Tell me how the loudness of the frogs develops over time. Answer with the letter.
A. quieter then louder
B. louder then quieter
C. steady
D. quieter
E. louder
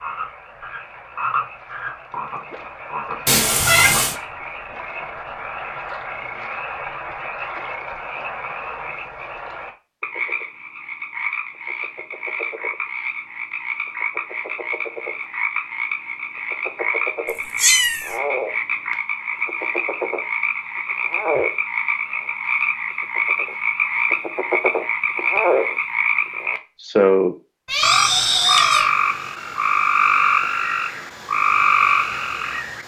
E.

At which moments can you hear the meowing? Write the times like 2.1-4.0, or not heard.
3.2-4.2, 17.6-18.1, 27.6-28.9.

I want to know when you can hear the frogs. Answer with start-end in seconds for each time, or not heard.
0.0-32.8.